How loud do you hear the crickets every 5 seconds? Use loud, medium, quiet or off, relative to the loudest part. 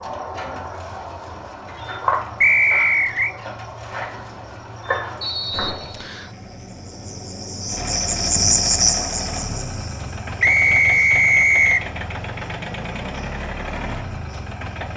medium, loud, quiet.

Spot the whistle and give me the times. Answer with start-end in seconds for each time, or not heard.
2.4-3.3, 5.2-6.3, 10.4-11.8.